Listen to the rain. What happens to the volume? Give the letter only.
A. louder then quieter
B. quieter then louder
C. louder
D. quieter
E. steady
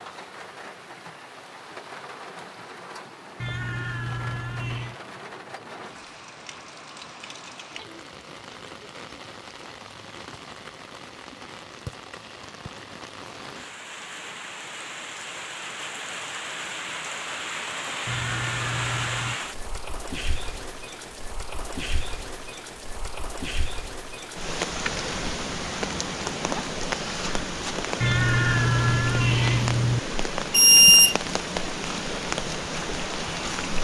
C.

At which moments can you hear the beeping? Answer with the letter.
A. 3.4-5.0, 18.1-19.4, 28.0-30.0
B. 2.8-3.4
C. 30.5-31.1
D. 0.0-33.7
C.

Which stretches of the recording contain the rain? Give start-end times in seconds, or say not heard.
0.0-33.7.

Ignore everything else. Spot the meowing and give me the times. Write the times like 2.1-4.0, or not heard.
3.4-5.0, 18.1-19.4, 28.0-30.0.